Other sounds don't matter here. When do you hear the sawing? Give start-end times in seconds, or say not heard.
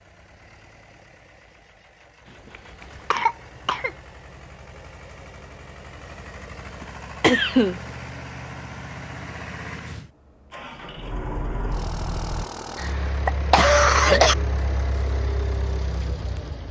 not heard.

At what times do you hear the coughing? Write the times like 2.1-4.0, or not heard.
3.1-3.9, 6.8-7.8, 12.8-14.3.